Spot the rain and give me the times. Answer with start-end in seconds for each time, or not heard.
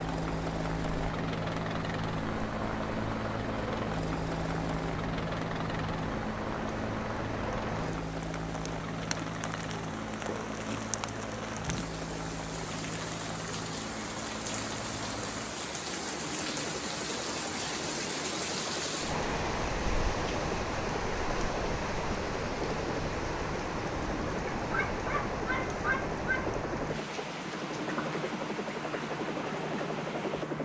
0.0-30.6.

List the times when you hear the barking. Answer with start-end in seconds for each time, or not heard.
24.6-26.4.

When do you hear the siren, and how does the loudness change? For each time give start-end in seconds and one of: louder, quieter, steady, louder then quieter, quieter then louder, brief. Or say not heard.
not heard.